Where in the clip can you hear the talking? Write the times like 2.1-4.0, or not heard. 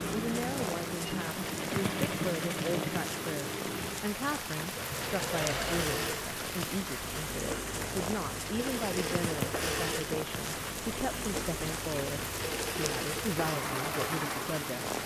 0.0-14.9.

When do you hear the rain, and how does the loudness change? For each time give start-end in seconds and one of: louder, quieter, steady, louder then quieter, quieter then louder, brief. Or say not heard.
0.0-15.0 steady.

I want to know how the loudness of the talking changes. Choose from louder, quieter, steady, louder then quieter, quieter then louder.
steady.